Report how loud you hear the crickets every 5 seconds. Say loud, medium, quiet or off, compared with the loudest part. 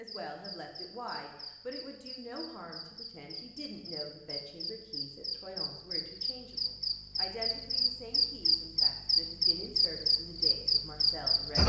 quiet, loud, loud.